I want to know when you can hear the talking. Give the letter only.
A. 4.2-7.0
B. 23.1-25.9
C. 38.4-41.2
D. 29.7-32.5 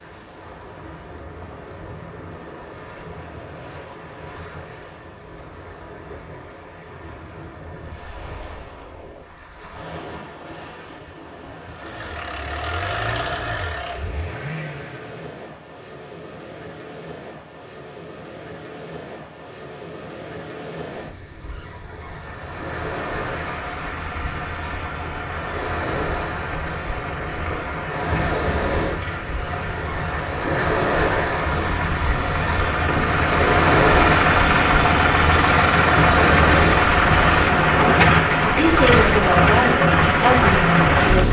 C.